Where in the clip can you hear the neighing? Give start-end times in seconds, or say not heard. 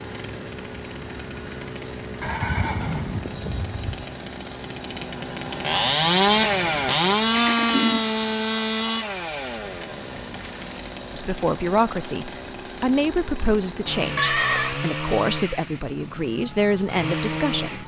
2.2-4.0, 7.3-8.2, 14.2-14.8.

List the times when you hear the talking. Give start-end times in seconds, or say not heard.
11.2-17.8.